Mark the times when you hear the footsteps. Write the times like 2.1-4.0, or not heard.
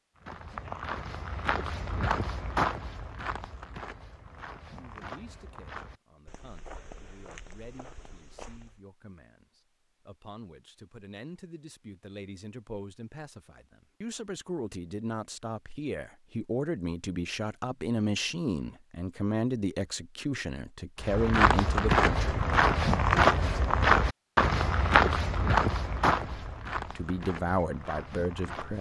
0.1-8.8, 21.0-28.7.